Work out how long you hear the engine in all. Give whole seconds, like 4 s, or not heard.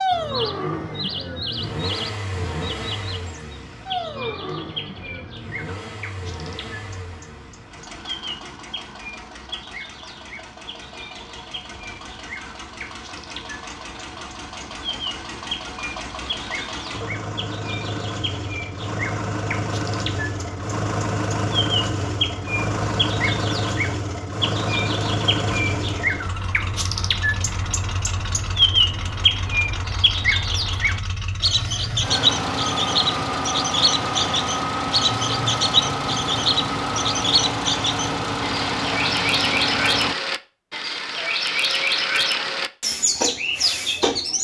40 s.